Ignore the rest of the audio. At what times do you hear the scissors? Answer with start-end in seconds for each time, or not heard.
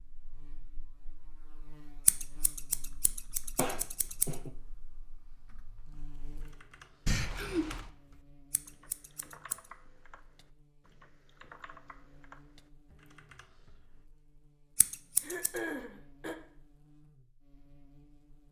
2.0-4.3, 8.5-9.6, 14.8-15.6.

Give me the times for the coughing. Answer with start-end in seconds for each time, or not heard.
3.5-4.5, 7.0-7.9, 15.2-16.4.